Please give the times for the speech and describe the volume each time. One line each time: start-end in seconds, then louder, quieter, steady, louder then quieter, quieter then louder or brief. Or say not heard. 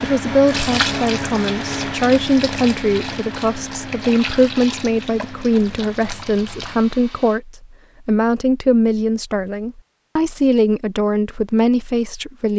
0.0-12.5 steady.